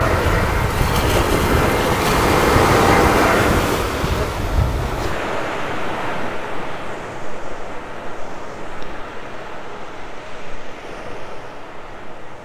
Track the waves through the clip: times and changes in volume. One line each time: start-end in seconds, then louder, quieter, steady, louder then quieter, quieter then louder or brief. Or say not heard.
0.0-12.4 quieter.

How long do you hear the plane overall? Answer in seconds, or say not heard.
4 s.